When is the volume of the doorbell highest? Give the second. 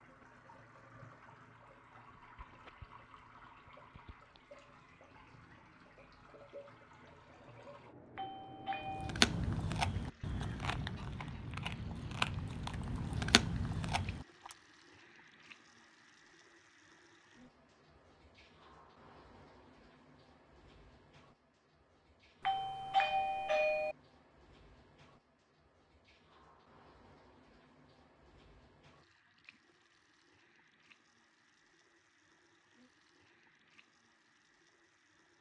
23 s.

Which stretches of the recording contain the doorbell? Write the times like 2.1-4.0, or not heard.
8.2-9.2, 22.4-23.9.